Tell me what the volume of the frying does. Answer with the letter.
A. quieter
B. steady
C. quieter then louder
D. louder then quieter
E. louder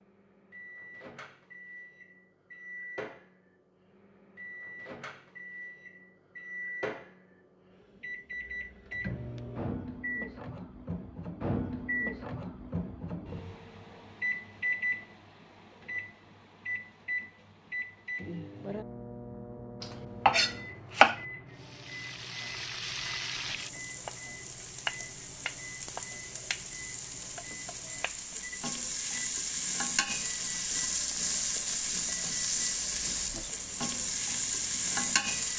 E.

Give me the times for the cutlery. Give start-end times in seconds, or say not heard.
not heard.